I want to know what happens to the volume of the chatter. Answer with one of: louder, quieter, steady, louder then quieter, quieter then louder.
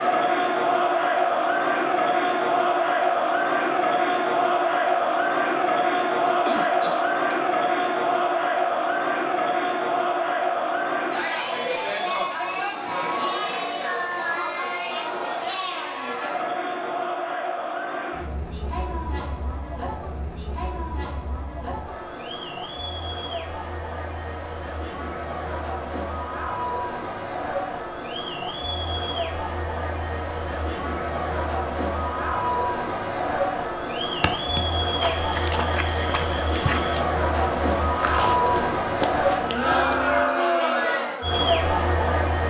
quieter then louder.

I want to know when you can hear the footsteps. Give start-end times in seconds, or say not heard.
34.2-40.2.